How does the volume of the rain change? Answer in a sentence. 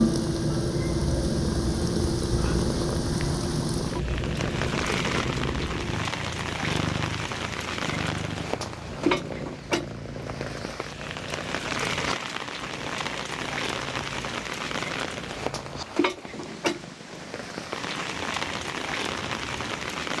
The loudness of the rain stays about the same.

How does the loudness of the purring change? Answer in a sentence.
The volume of the purring goes down.